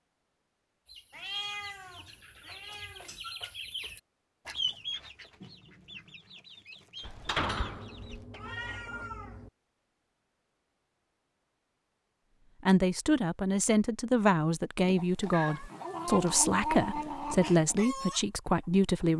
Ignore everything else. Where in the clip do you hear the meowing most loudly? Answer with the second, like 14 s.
17 s.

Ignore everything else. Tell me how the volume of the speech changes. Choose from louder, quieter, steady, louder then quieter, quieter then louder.
steady.